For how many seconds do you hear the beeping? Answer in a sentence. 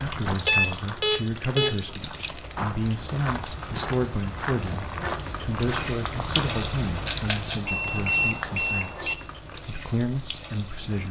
The beeping can be heard for 3 seconds in total.